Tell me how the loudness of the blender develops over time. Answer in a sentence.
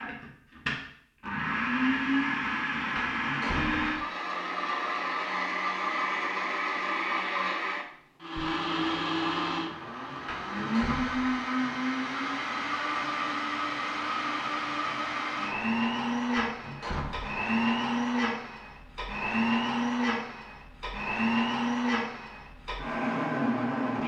The loudness of the blender stays about the same.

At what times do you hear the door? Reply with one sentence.
You can hear the door from 3.0 to 4.0 s, from 10.2 to 11.3 s and from 16.4 to 17.4 s.